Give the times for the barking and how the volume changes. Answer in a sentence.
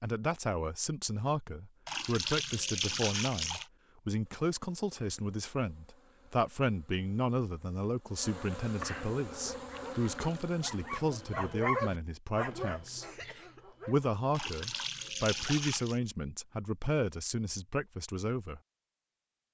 You can hear the barking from 9.3 to 14.1 s, getting louder then quieter.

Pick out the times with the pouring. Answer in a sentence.
The pouring can be heard from 1.9 to 3.6 s, from 9.9 to 10.7 s and from 14.3 to 16.0 s.